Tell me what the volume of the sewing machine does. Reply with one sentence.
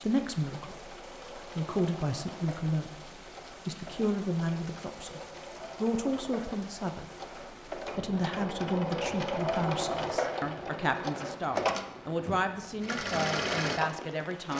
The volume of the sewing machine goes up.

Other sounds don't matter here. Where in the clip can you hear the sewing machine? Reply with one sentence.
The sewing machine can be heard from 0.0 to 14.5 s.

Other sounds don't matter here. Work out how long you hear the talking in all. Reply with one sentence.
You can hear the talking for 14 seconds altogether.